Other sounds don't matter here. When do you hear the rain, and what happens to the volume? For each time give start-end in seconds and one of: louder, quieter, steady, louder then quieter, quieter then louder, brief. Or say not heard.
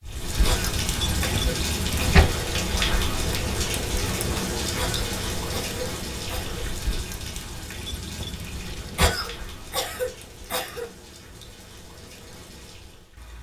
0.0-13.3 quieter.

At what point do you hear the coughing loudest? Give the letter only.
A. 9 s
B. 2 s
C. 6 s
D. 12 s
A.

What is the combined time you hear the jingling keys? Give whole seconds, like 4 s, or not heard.
3 s.